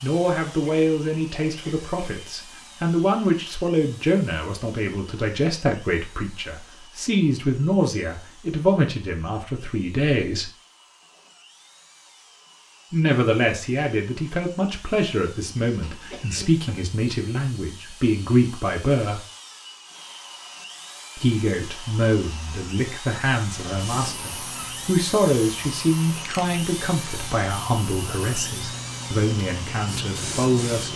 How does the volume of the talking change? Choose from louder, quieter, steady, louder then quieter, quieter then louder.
steady.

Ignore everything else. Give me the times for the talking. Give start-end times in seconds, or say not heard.
0.0-10.5, 12.9-19.2, 21.1-30.9.